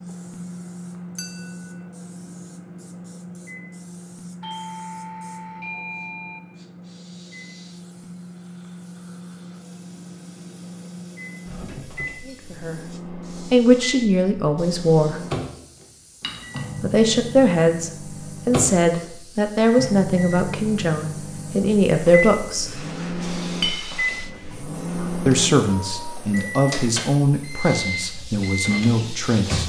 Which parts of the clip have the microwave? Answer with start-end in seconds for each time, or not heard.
0.0-29.6.